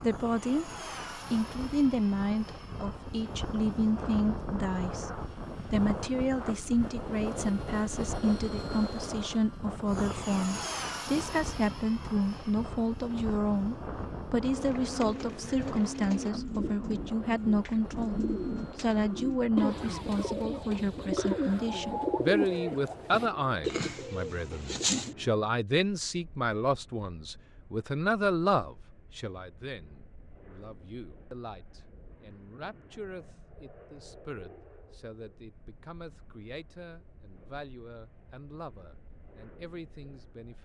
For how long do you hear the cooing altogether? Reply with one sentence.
You can hear the cooing for 11 seconds altogether.